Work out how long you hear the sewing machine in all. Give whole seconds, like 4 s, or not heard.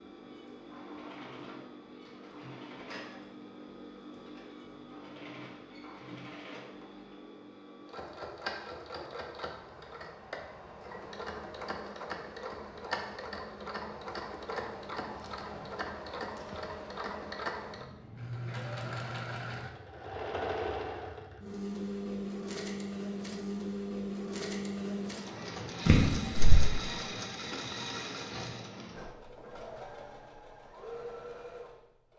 32 s.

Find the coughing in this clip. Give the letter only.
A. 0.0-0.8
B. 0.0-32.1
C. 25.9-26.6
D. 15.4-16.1
C.